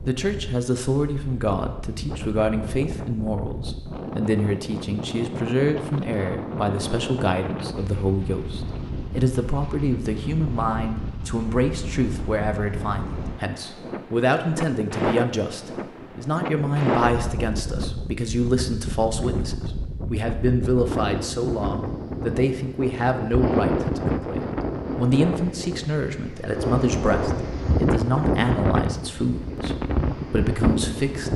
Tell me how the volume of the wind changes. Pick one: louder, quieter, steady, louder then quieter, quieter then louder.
louder.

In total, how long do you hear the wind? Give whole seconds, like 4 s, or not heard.
31 s.